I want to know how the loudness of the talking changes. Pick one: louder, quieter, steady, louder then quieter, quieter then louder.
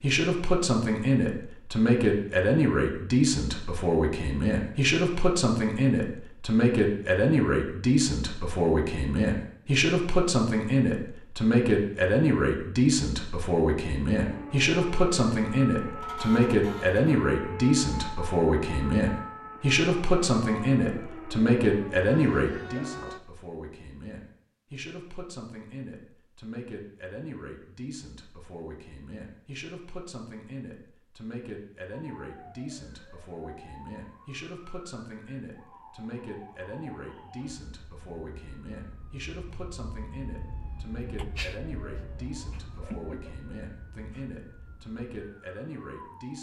quieter.